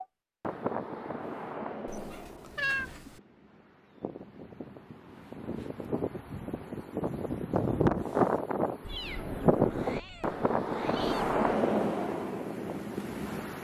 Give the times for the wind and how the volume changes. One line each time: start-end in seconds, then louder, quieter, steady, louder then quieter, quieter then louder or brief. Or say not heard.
0.0-13.5 quieter then louder.